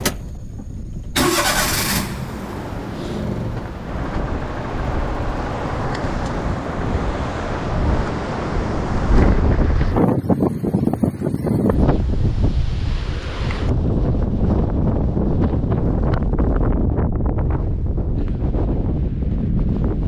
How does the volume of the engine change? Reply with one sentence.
The volume of the engine goes down.